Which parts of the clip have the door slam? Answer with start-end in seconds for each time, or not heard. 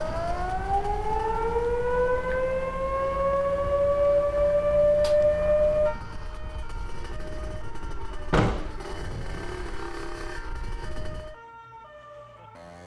8.3-8.8.